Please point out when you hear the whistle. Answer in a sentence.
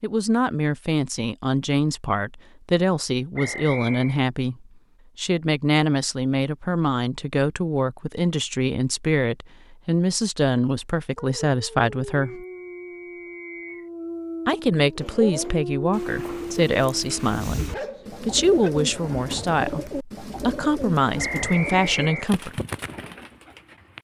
The whistle can be heard from 3.4 to 4.2 s, from 12.2 to 13.9 s and from 21.1 to 22.3 s.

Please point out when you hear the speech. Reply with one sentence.
You can hear the speech from 0.0 to 12.4 s and from 14.4 to 22.6 s.